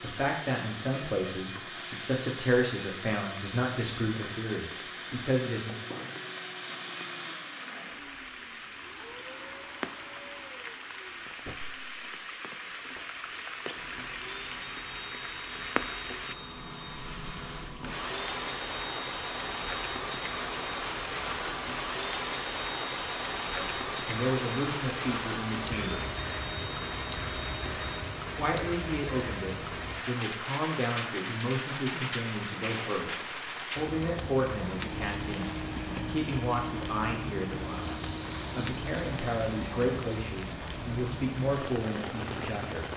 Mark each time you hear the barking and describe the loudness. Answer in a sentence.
The barking can't be heard in this clip.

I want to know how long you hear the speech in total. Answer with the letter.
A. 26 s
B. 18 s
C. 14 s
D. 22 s
D.